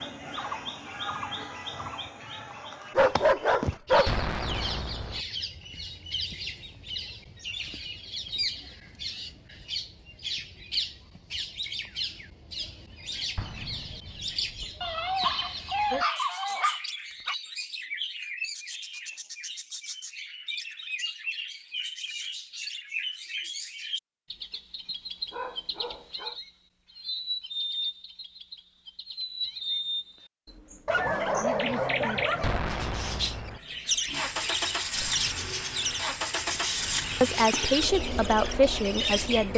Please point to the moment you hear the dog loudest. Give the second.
3 s.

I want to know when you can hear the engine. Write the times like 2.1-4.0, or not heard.
34.0-39.5.